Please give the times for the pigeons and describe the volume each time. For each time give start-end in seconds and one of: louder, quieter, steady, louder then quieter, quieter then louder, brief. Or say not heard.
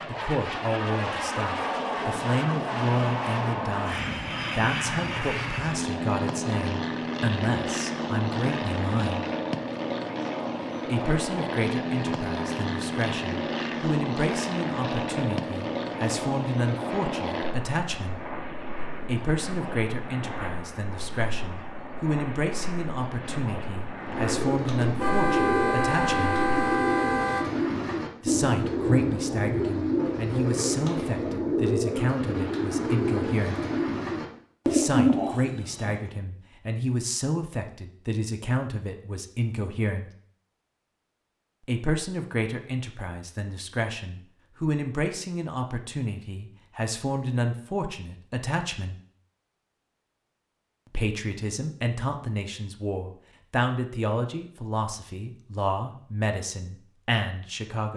24.0-36.0 steady.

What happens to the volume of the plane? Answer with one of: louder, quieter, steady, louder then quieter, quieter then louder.
quieter.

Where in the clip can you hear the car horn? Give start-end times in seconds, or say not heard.
25.0-27.4.